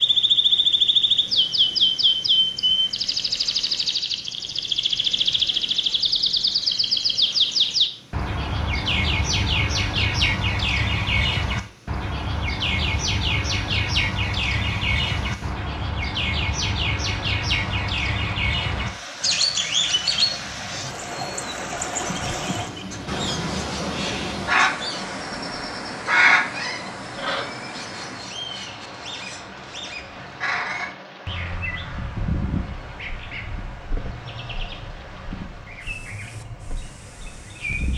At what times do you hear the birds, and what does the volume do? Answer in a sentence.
You can hear the birds from 0.0 to 37.9 s, getting quieter.